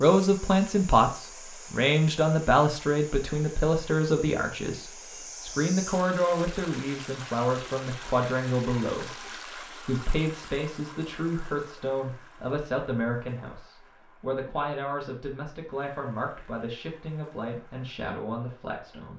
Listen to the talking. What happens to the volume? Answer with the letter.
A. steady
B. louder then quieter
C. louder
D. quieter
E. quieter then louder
D.